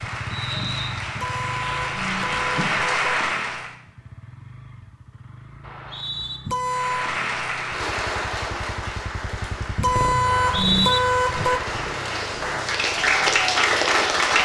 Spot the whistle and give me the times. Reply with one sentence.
The whistle can be heard from 0.3 to 1.1 s, from 5.6 to 6.4 s and from 10.2 to 11.0 s.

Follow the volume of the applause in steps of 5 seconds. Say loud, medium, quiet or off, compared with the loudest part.
loud, medium, loud.